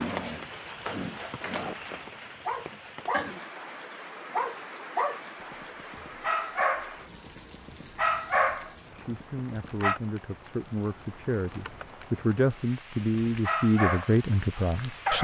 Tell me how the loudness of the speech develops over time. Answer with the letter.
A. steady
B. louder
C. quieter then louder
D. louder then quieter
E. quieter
B.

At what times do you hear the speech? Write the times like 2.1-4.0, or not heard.
8.9-15.1.